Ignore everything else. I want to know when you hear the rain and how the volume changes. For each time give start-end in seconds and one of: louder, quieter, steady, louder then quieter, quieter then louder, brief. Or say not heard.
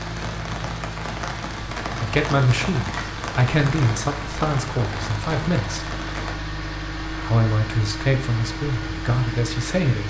0.0-6.3 steady.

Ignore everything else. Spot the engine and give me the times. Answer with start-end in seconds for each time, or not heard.
0.0-10.0.